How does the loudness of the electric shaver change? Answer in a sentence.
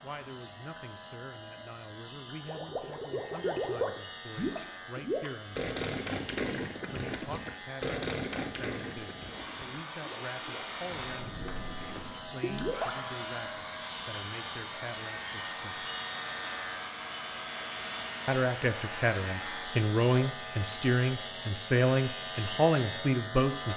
The loudness of the electric shaver goes up.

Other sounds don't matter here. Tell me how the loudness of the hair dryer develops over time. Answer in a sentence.
The volume of the hair dryer stays about the same.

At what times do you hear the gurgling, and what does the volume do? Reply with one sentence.
The gurgling can be heard from 2.4 to 12.9 s, getting quieter.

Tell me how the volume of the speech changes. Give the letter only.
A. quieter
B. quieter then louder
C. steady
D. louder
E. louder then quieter
D.